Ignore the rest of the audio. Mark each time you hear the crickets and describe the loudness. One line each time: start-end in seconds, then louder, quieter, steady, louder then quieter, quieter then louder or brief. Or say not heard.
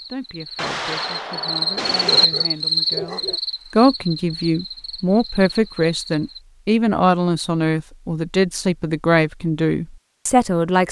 0.0-6.4 louder then quieter.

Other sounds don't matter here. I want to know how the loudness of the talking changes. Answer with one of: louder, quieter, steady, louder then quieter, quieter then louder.
louder.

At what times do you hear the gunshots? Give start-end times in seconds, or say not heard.
0.6-2.2.